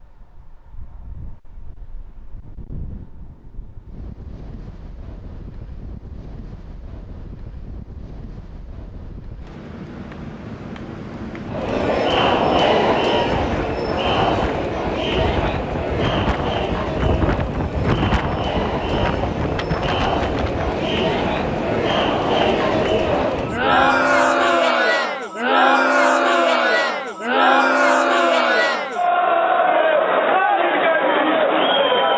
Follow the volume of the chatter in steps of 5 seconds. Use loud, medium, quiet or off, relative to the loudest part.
off, off, loud, medium, loud, loud, loud.